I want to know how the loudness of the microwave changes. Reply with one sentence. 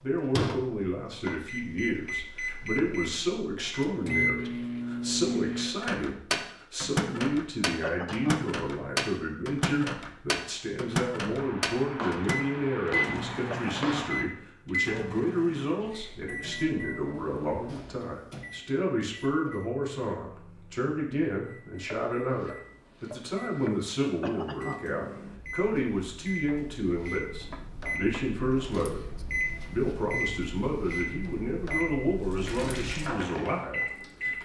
The volume of the microwave goes down, then up.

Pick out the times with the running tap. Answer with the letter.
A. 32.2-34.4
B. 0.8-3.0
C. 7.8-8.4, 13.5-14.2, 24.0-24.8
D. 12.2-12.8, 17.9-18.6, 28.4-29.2
A.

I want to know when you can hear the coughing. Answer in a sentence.
The coughing can be heard from 7.8 to 8.4 s, from 13.5 to 14.2 s and from 24.0 to 24.8 s.